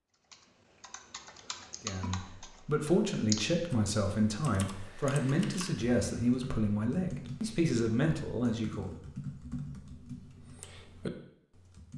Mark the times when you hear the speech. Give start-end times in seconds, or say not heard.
1.8-8.9.